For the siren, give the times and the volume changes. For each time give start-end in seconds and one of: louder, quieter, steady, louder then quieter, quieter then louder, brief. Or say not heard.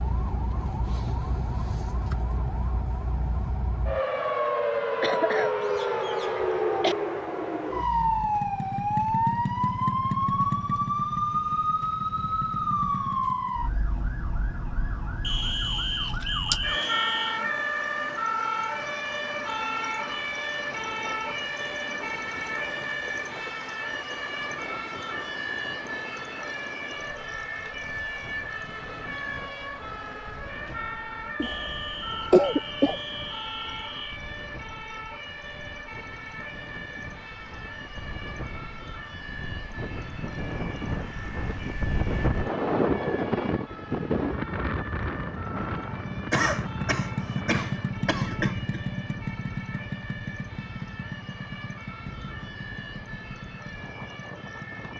0.0-54.9 quieter.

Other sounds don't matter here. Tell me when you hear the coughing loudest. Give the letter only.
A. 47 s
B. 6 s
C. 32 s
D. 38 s
C.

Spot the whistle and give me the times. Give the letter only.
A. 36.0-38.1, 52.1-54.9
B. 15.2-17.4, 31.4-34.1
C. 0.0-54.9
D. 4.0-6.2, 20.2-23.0
B.